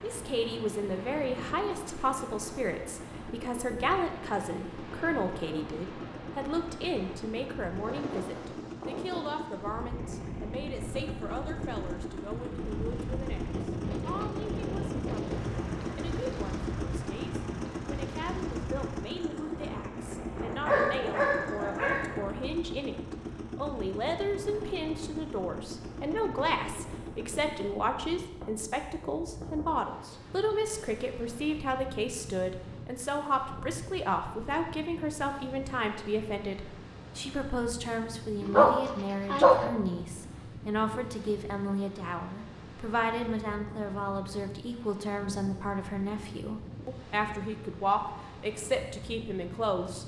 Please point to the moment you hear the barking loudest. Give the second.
39 s.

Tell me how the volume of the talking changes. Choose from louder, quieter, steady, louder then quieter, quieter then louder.
quieter then louder.